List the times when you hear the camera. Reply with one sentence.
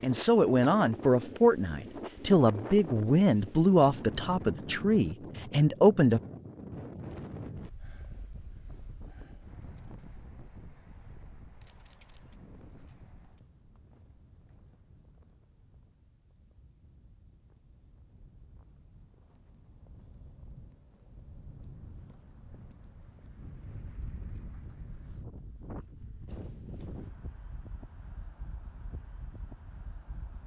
You can hear the camera from 11.6 to 12.4 s.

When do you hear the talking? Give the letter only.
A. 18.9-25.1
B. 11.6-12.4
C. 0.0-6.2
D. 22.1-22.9
C.